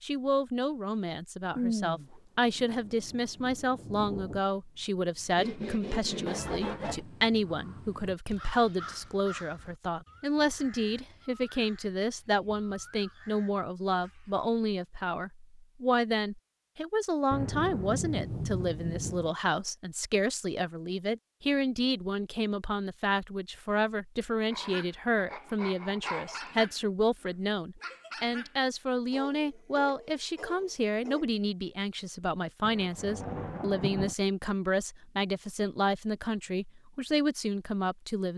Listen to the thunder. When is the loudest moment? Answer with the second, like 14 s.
2 s.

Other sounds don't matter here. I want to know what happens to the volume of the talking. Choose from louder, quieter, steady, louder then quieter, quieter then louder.
steady.